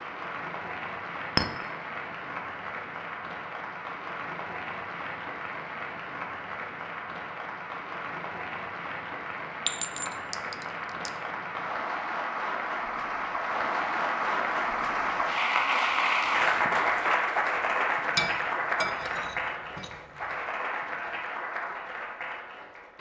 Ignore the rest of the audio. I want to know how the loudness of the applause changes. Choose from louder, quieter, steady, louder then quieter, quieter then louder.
louder then quieter.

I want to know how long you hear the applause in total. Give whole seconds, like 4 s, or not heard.
23 s.